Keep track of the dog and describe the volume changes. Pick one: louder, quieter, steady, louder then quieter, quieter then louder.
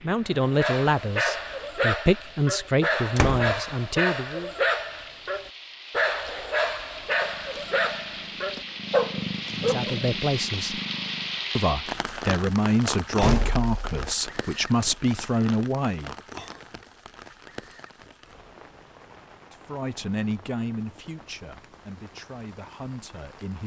steady.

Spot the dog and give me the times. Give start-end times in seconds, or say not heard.
0.2-10.2.